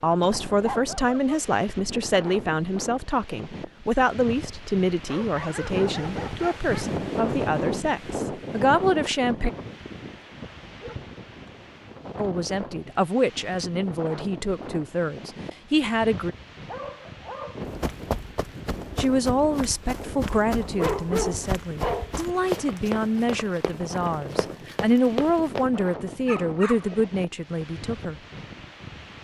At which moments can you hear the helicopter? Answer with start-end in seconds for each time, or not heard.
not heard.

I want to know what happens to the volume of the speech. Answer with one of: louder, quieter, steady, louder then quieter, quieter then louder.
steady.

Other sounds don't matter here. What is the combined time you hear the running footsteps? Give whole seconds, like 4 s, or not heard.
8 s.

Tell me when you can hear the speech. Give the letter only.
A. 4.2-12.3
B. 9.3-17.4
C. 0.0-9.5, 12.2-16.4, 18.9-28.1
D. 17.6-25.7
C.